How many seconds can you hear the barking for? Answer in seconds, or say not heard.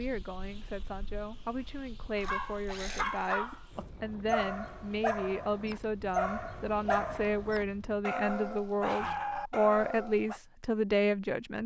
8 s.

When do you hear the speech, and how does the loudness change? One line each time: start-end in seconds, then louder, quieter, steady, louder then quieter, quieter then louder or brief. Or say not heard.
0.0-11.6 louder.